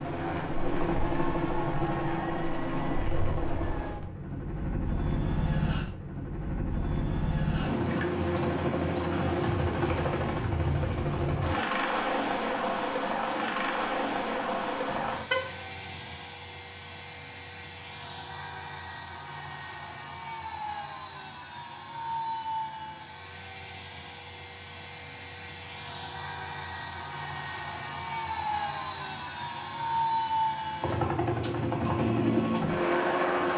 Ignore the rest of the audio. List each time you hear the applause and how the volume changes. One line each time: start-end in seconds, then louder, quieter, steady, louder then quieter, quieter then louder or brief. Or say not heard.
not heard.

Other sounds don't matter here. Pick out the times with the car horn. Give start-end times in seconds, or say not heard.
14.8-16.1.